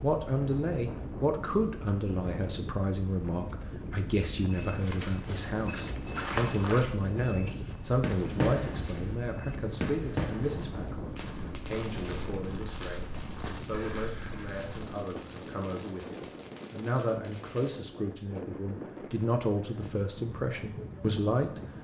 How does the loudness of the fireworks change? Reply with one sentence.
The volume of the fireworks goes down.